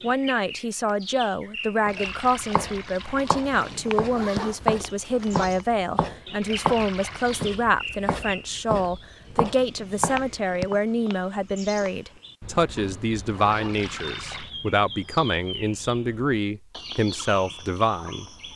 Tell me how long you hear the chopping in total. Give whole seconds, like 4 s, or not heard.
9 s.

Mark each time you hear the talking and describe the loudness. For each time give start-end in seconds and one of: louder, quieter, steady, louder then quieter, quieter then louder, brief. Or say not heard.
0.0-18.2 steady.